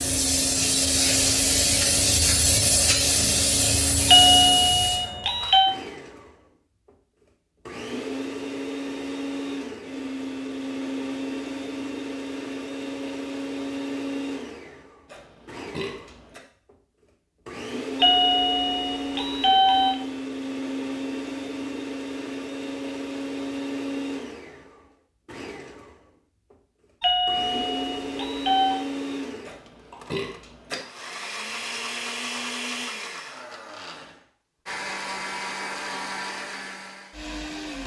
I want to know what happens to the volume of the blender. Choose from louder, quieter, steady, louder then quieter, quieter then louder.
steady.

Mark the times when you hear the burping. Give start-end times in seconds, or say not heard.
15.1-16.4, 29.4-30.8.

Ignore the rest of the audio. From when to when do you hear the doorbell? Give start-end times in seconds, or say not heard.
4.0-5.8, 18.0-20.0, 27.0-28.8.